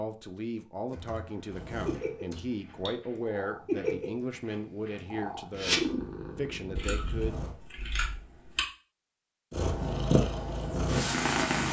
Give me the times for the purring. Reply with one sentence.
The purring can be heard from 1.5 to 7.5 s and from 9.5 to 11.6 s.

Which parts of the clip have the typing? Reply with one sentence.
You can hear the typing from 0.9 to 3.0 s and from 6.8 to 8.6 s.